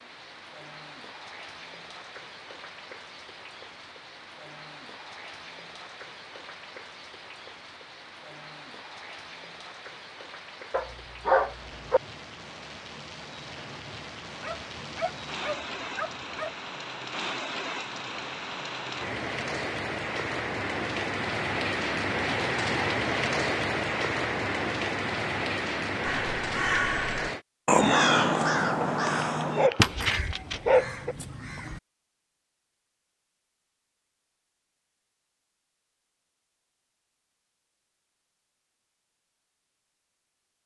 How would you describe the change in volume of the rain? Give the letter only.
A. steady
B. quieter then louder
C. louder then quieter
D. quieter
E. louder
E.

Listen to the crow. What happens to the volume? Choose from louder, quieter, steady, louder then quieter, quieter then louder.
louder then quieter.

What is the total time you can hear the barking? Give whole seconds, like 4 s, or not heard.
6 s.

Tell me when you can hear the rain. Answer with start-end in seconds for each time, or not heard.
0.0-27.4.